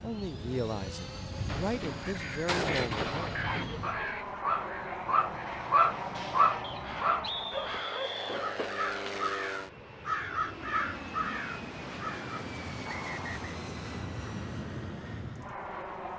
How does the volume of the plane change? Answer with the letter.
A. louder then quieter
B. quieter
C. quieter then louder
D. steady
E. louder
D.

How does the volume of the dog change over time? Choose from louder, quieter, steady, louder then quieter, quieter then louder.
louder then quieter.